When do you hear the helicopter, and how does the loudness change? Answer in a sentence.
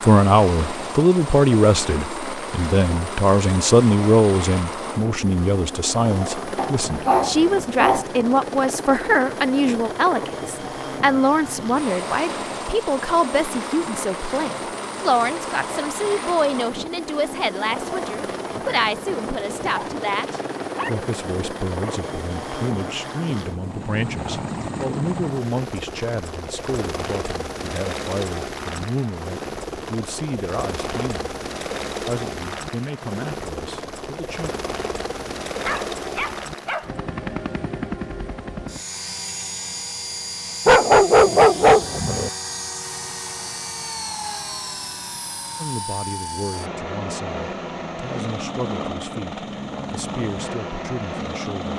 The helicopter can be heard from 0.0 to 51.7 s, at a steady volume.